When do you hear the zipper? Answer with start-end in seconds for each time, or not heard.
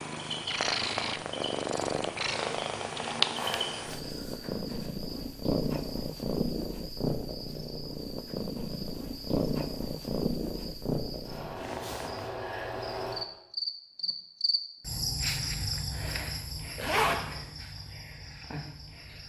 3.4-4.9, 16.8-17.2.